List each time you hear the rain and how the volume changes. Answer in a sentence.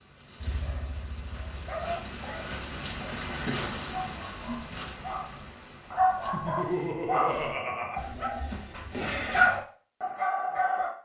The rain can be heard from 0.0 to 7.0 s, getting louder then quieter.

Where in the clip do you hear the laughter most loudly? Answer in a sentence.
The loudest moment of the laughter is at 7 seconds.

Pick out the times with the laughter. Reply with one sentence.
The laughter can be heard from 3.3 to 3.8 s and from 6.3 to 8.0 s.